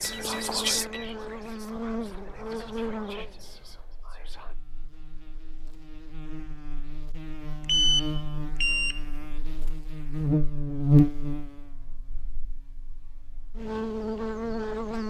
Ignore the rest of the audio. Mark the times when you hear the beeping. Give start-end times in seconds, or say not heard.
0.0-1.1, 7.6-9.0.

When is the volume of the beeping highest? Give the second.
8 s.